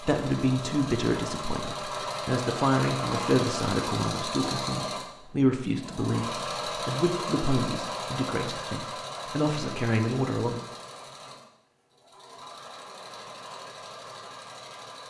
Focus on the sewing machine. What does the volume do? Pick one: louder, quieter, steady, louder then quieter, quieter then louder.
quieter.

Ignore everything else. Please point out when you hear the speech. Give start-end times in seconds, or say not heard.
0.0-10.6.